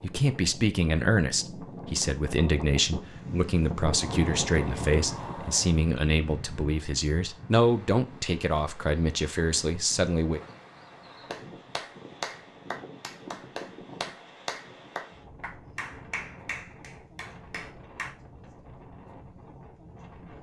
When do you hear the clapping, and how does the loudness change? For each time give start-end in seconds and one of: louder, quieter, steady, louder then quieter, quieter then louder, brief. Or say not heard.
11.3-18.1 quieter.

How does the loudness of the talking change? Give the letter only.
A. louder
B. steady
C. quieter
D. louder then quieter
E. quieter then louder
B.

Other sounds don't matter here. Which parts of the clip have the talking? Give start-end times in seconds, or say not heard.
0.0-10.4.